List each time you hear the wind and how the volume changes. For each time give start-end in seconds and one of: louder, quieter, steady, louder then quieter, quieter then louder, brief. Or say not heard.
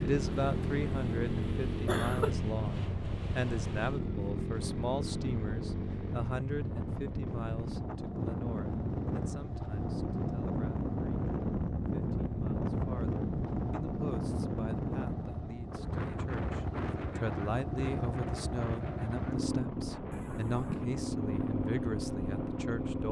0.0-22.8 louder then quieter.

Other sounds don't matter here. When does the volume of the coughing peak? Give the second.
2 s.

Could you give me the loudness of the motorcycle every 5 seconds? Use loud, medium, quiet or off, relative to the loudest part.
loud, medium, medium, loud, loud.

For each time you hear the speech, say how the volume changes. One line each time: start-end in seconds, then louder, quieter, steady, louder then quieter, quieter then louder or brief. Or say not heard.
0.0-11.3 quieter
11.9-23.0 louder.